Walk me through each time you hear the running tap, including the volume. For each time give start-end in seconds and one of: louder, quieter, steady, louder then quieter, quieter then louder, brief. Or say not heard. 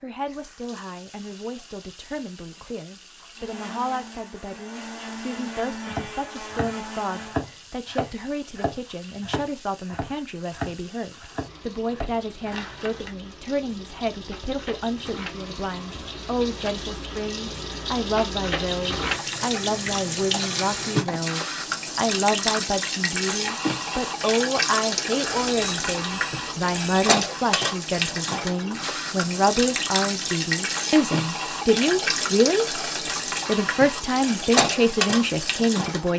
0.1-36.1 louder.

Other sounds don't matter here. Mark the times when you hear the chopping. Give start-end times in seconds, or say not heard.
5.8-13.2.